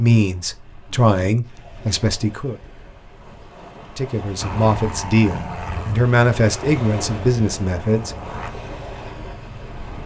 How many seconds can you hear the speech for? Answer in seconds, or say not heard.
7 s.